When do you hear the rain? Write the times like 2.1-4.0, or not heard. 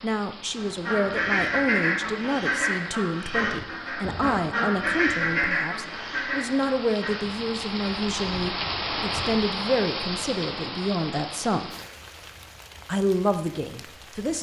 0.0-14.3.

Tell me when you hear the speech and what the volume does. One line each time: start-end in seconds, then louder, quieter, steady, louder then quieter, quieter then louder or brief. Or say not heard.
0.0-11.8 steady
12.8-14.3 brief.